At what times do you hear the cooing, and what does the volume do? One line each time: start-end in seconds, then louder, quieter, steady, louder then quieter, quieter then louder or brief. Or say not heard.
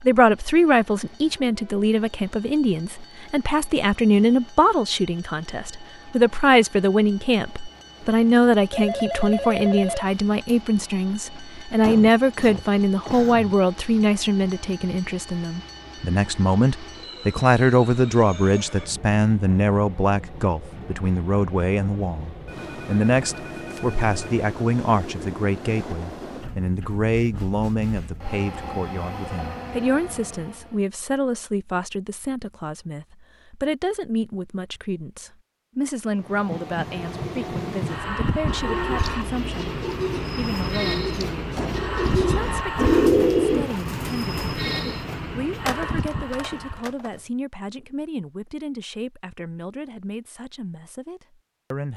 38.5-45.0 louder then quieter.